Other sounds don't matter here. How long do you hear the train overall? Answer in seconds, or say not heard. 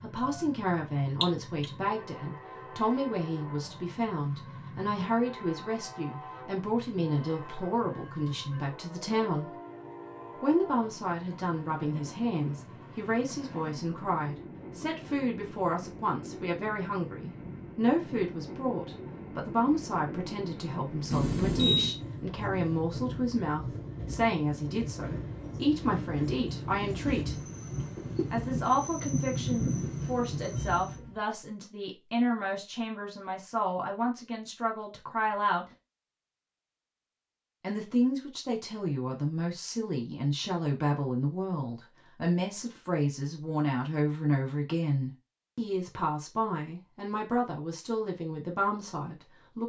31 s.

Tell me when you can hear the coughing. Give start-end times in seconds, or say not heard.
1.2-1.7.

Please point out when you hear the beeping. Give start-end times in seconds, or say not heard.
21.1-21.9, 30.8-31.2.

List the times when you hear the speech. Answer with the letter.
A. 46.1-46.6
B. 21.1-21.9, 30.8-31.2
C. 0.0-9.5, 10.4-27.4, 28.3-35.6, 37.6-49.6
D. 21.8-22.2
C.